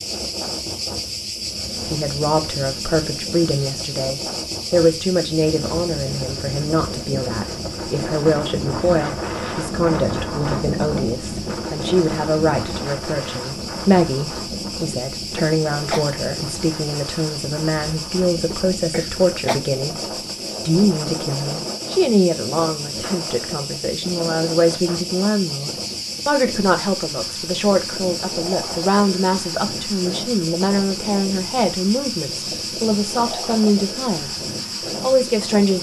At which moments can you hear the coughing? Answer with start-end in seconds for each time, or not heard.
14.9-16.1, 18.5-19.6.